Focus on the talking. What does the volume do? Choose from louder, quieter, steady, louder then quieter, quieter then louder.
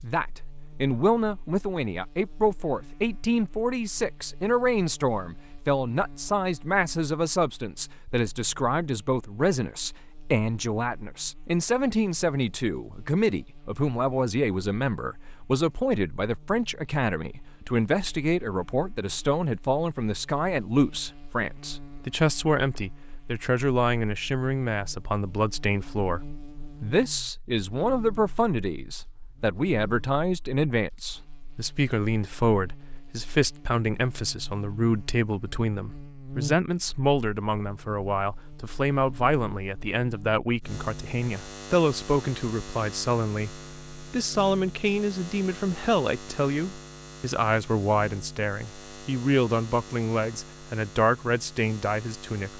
steady.